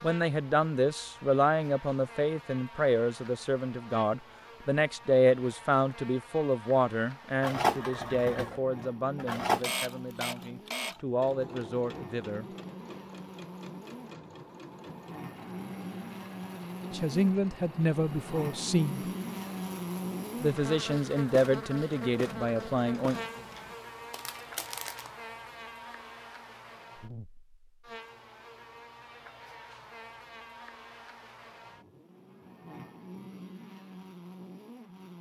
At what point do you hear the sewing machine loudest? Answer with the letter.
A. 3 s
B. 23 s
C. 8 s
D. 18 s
C.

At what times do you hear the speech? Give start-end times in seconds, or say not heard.
0.0-12.4, 16.9-19.1, 20.4-23.2.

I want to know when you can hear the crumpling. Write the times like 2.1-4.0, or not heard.
24.1-25.1.